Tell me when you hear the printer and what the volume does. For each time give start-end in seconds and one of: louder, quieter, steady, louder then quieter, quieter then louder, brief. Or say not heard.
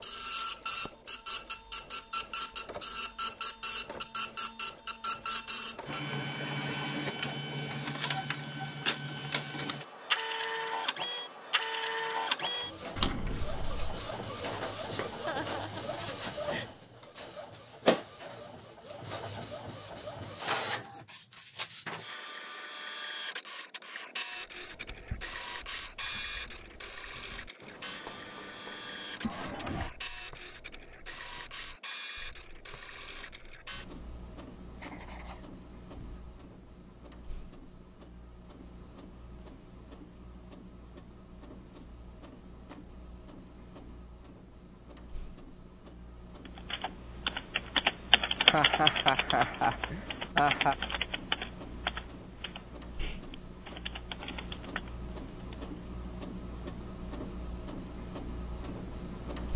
0.0-59.5 quieter then louder.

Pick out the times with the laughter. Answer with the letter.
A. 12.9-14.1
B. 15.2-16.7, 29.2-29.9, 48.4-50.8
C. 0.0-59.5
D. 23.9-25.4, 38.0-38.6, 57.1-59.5
B.